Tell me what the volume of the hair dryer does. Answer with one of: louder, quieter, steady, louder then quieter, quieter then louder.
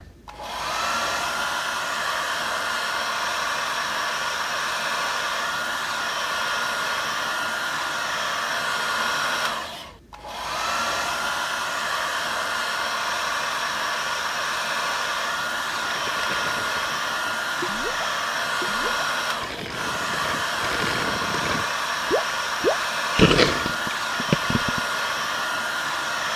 steady.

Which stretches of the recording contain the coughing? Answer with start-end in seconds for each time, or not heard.
not heard.